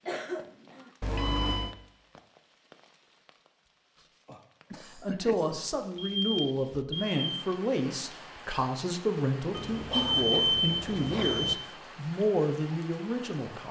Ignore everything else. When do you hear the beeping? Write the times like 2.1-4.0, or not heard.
1.0-1.8, 6.0-7.2, 9.5-11.6.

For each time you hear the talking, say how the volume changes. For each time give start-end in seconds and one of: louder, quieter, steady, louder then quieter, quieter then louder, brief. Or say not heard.
5.0-13.6 steady.